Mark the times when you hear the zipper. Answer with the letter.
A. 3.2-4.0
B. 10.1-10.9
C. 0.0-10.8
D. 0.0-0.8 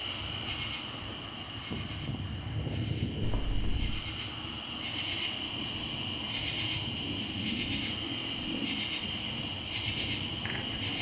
A.